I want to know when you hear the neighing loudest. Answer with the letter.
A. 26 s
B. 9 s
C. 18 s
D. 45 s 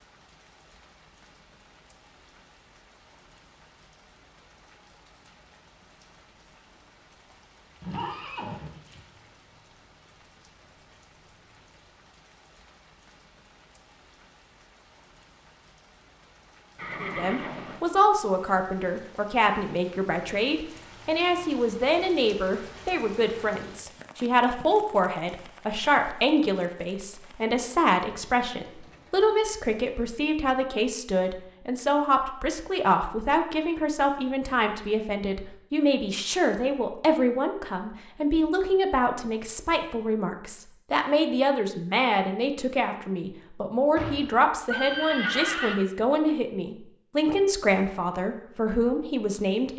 D.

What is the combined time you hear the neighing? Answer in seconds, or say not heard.
4 s.